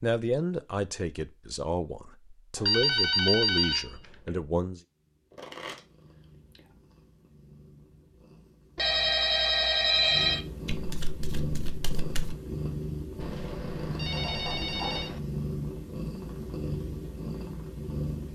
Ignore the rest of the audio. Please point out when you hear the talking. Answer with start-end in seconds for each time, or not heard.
0.0-4.8.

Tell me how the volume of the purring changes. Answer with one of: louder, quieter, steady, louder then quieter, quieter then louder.
louder.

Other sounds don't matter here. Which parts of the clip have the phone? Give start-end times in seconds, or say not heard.
2.5-4.3, 8.8-10.4, 13.2-15.2.